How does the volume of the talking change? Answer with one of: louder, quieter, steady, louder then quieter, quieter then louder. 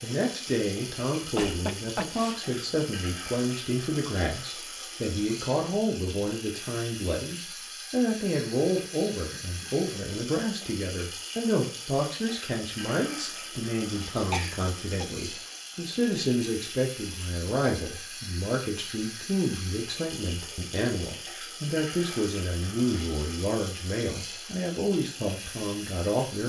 steady.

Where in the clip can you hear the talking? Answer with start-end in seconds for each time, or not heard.
0.0-26.4.